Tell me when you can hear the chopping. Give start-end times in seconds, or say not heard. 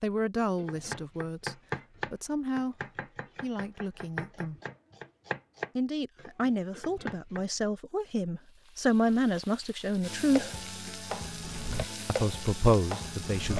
0.6-7.5.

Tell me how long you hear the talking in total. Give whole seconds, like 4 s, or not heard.
10 s.